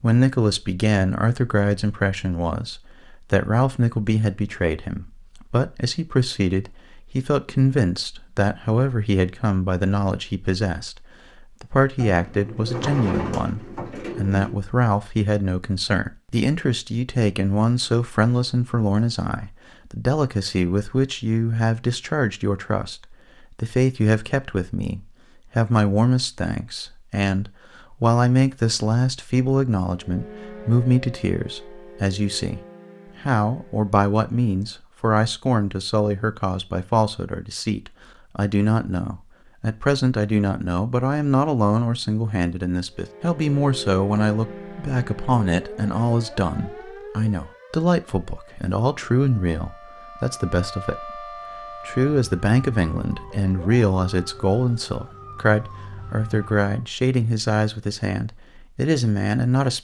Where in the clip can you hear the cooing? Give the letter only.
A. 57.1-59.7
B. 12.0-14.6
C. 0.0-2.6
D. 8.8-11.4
B.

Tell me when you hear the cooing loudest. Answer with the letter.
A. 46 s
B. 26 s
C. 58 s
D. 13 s
D.